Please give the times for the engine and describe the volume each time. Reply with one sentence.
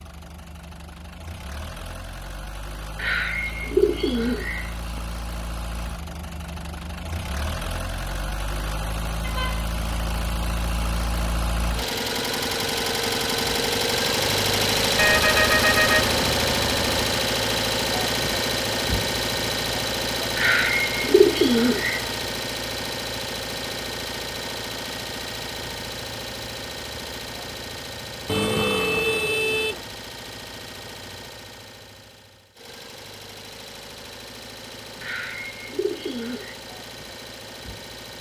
The engine can be heard from 0.0 to 38.1 s, getting louder then quieter.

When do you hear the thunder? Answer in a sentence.
You can't hear the thunder here.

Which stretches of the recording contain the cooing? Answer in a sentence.
The cooing can be heard from 3.0 to 5.0 s, from 20.4 to 22.0 s and from 35.0 to 36.5 s.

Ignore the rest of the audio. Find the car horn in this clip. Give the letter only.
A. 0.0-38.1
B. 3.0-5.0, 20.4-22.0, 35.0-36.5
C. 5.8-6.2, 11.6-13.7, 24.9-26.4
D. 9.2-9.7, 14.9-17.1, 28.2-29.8
D.